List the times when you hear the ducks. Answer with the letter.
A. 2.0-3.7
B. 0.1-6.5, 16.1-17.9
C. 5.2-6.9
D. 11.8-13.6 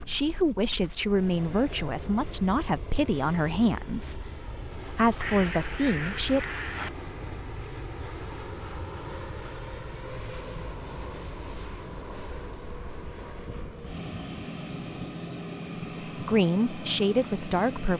C.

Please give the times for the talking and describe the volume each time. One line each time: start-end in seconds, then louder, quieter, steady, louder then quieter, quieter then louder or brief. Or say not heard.
0.1-6.5 quieter then louder
16.1-17.9 brief.